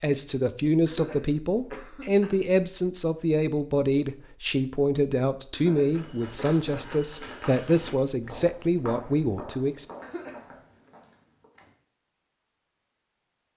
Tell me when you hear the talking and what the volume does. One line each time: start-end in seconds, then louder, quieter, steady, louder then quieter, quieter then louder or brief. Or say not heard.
0.0-9.8 steady.